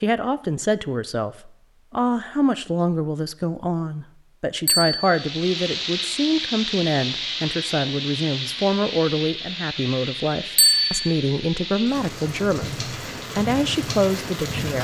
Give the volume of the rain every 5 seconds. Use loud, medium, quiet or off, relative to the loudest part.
off, loud, loud.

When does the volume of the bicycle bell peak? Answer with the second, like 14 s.
11 s.